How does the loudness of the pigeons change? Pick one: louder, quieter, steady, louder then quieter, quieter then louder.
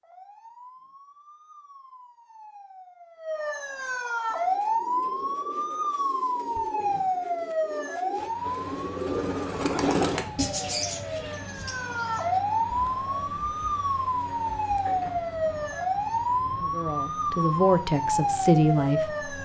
louder then quieter.